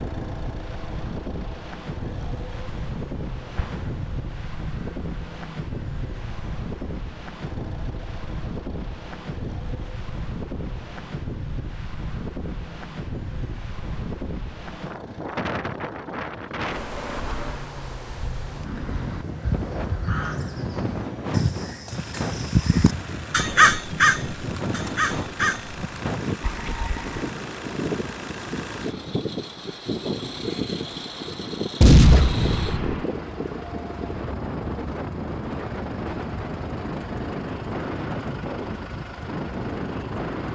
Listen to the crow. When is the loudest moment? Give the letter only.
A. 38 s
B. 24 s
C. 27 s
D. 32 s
B.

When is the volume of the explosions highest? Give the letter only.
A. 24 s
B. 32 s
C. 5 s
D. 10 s
B.